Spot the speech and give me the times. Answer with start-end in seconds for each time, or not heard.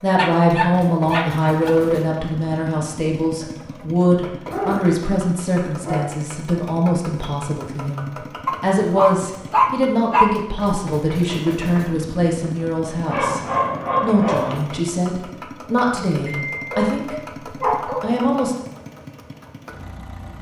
0.0-13.4, 14.0-17.1, 18.0-18.6.